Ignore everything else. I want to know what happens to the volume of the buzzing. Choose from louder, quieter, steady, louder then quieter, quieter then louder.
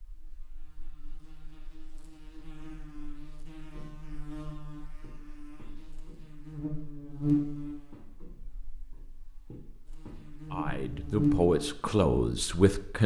louder.